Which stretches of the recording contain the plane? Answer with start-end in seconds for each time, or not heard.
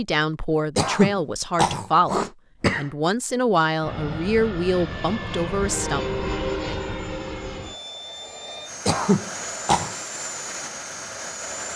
3.8-11.7.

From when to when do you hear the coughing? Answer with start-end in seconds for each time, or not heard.
0.8-2.9, 8.8-9.9.